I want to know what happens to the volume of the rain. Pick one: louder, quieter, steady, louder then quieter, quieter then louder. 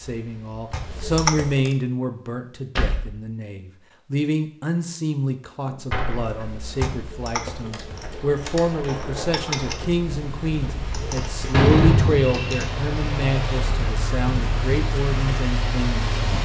louder.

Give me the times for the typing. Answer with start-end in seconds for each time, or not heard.
0.0-1.8, 6.2-12.7.